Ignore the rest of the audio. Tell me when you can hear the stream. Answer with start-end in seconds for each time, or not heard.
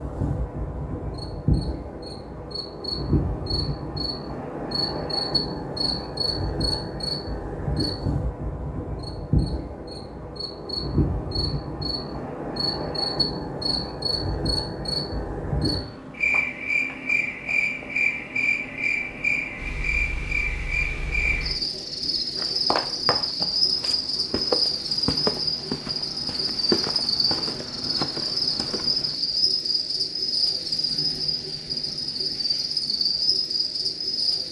not heard.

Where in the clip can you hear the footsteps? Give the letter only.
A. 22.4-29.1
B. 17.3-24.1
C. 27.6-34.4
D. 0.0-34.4
A.